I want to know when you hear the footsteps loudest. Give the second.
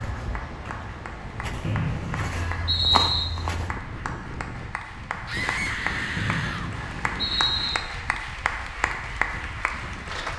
3 s.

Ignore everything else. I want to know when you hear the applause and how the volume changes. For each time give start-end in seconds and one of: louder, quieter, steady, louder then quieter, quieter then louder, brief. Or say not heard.
0.1-10.3 louder.